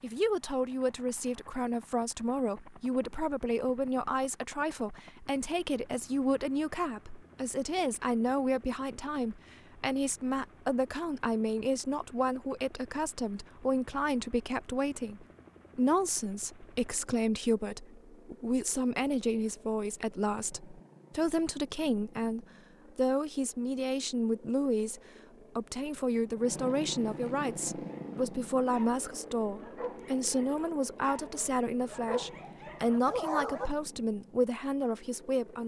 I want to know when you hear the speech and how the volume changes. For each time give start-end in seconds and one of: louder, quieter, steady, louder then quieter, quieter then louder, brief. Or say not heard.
0.0-35.6 steady.